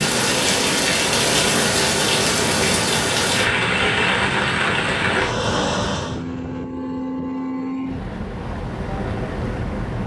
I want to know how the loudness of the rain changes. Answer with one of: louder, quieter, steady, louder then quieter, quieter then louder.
steady.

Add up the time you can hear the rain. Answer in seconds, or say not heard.
6 s.